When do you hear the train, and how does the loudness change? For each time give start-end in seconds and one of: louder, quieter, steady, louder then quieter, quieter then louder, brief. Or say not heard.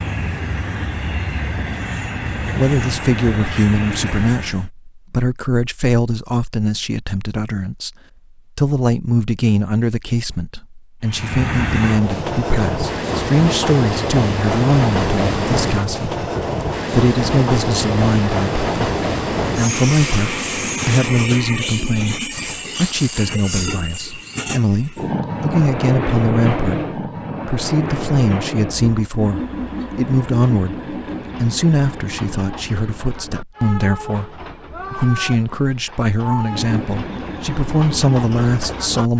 0.0-4.7 steady
11.1-39.1 quieter.